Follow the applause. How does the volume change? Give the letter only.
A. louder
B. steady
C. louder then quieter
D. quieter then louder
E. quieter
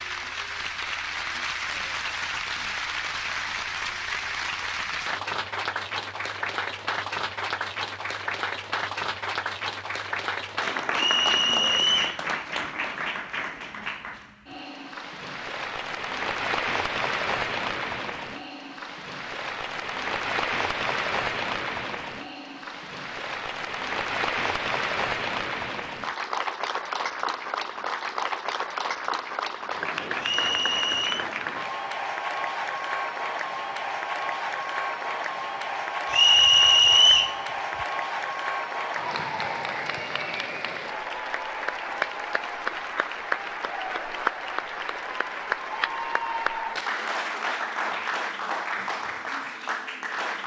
B.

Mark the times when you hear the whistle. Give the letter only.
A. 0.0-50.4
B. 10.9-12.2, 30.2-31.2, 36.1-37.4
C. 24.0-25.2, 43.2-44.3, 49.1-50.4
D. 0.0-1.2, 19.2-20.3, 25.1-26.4
B.